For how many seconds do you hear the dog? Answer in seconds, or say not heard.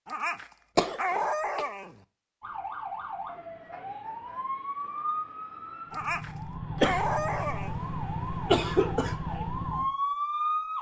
4 s.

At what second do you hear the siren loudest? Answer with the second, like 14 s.
10 s.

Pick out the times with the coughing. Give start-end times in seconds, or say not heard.
0.8-1.6, 6.8-9.2.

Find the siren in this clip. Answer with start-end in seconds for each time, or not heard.
2.4-10.7.